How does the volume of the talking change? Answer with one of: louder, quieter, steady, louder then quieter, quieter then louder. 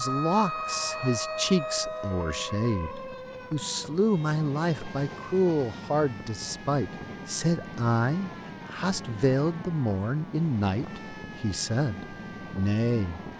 steady.